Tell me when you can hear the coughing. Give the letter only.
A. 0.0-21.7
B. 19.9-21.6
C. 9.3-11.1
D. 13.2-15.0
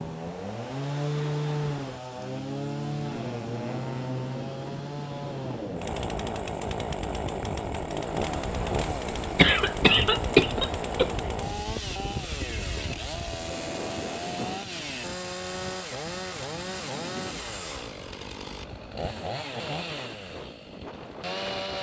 C.